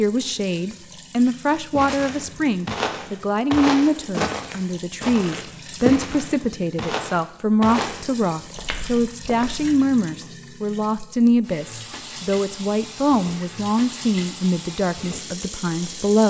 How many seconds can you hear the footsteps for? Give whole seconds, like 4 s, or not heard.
8 s.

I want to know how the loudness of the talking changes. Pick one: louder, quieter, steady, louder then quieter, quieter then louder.
steady.